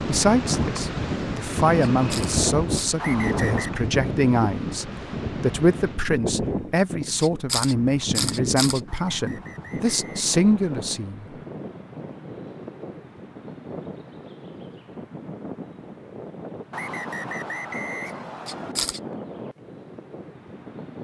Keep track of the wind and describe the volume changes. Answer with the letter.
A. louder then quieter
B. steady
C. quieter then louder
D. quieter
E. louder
D.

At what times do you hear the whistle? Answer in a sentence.
The whistle can be heard from 3.0 to 3.9 s, from 8.8 to 10.8 s and from 16.7 to 18.8 s.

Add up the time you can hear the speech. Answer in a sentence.
The speech can be heard for 11 seconds in total.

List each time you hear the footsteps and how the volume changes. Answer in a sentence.
You can't hear the footsteps here.